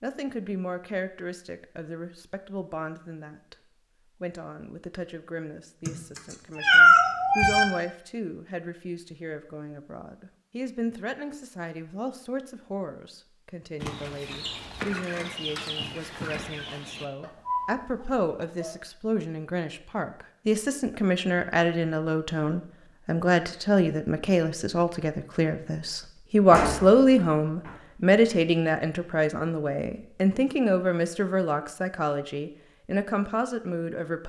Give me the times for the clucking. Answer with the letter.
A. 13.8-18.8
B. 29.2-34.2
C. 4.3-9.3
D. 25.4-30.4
A.